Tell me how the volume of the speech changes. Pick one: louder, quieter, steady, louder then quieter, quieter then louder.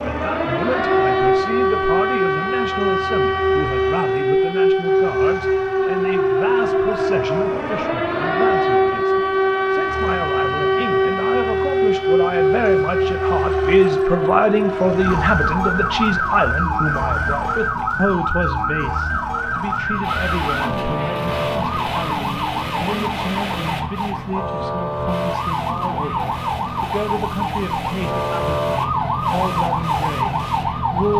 louder then quieter.